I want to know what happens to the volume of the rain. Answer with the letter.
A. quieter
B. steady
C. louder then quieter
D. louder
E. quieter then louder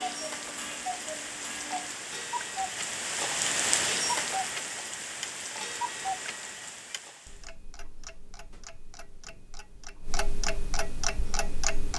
C.